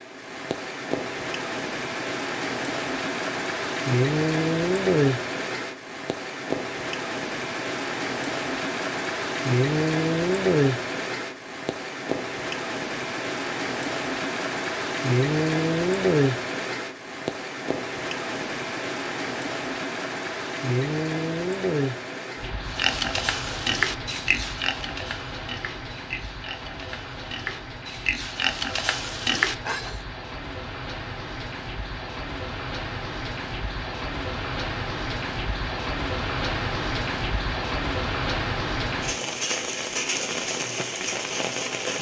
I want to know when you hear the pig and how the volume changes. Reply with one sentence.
The pig can be heard from 22.6 to 30.0 s, getting quieter then louder.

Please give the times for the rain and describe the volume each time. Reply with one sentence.
The rain can be heard from 0.0 to 41.9 s, getting quieter then louder.